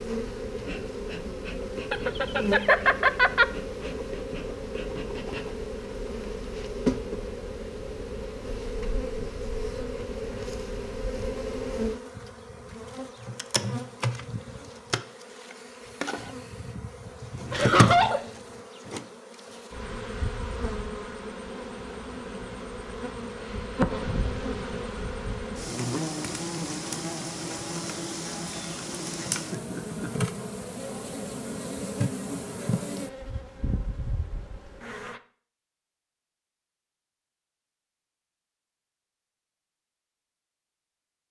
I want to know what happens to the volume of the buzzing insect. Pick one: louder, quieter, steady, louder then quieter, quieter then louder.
steady.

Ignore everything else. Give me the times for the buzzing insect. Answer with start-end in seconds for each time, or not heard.
0.0-35.2.